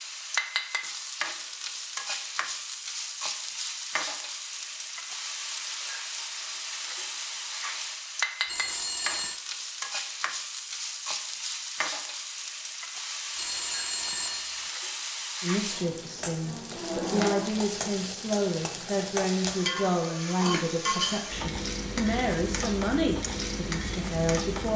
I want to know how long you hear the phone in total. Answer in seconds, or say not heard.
2 s.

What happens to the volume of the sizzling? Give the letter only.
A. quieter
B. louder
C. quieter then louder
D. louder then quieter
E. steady
E.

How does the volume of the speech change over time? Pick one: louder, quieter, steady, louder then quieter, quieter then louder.
steady.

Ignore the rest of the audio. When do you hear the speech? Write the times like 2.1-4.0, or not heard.
15.4-24.7.